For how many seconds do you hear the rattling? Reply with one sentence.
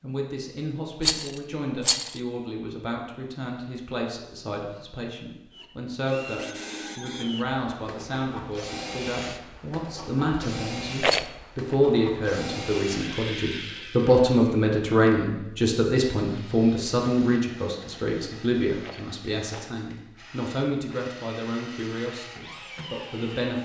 The rattling can be heard for 3 seconds in total.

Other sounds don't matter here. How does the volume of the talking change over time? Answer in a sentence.
The volume of the talking goes up, then down.